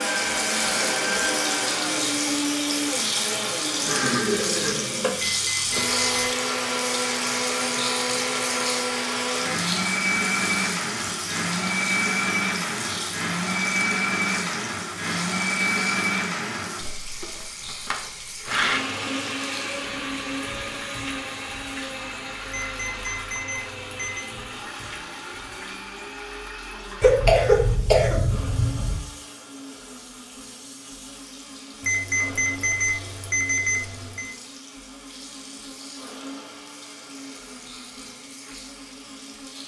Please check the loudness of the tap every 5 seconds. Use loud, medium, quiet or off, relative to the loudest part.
loud, loud, medium, medium, quiet, quiet, quiet, quiet.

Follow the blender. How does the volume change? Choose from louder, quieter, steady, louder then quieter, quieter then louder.
quieter.